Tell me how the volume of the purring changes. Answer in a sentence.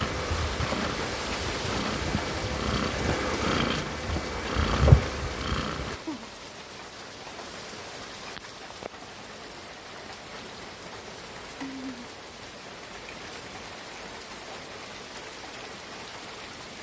The loudness of the purring goes up.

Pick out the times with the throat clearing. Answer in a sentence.
You can't hear the throat clearing here.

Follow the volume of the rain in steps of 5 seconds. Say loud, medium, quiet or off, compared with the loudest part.
loud, medium, medium, medium.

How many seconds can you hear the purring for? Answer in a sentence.
You can hear the purring for 6 seconds altogether.